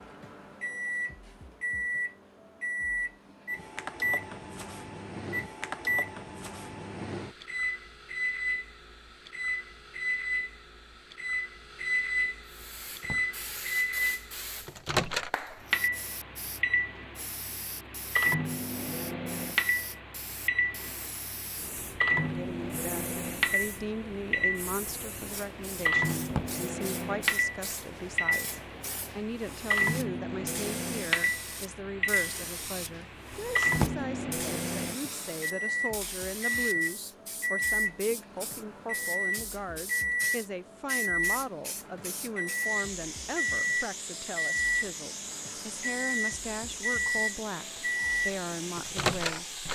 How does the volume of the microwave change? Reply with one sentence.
The volume of the microwave stays about the same.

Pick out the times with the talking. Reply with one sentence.
The talking can be heard from 22.2 to 49.6 s.